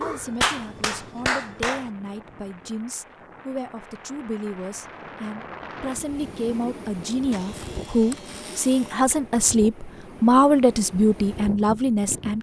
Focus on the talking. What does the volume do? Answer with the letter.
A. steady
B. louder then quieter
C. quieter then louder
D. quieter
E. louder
E.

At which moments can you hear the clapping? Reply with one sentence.
You can hear the clapping from 0.0 to 1.9 s.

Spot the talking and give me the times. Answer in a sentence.
The talking can be heard from 0.0 to 12.3 s.